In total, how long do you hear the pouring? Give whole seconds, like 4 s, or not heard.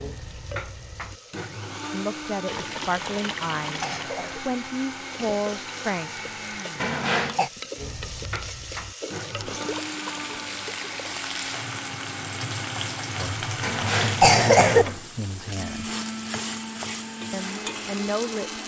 3 s.